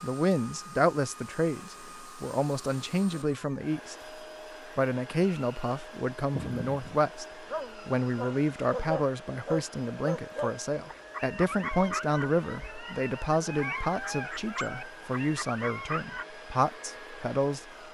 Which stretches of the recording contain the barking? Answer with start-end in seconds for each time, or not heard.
6.3-16.2.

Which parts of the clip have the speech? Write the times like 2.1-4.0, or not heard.
0.0-4.0, 4.8-7.2, 7.8-17.6.